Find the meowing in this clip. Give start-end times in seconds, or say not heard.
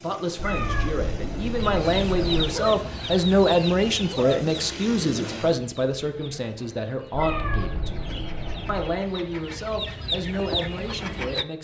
0.3-2.4, 7.1-8.8.